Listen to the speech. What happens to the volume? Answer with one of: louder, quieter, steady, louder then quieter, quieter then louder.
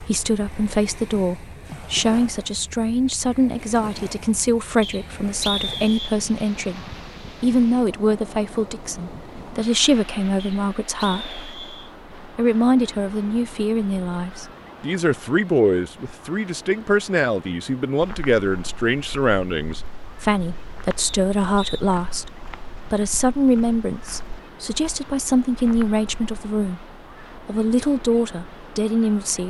steady.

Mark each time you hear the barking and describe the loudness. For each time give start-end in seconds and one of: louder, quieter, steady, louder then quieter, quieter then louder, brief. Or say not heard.
not heard.